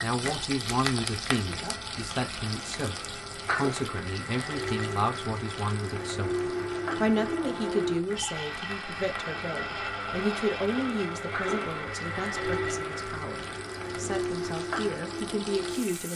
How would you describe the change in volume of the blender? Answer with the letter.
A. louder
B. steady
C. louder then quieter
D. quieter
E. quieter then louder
A.